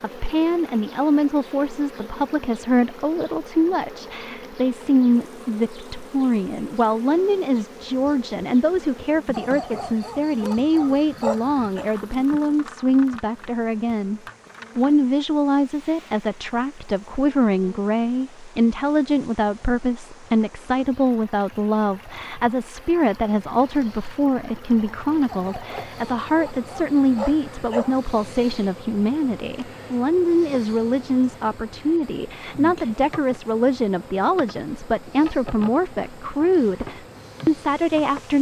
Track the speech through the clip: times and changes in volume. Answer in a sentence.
You can hear the speech from 0.0 to 38.3 s, at a steady volume.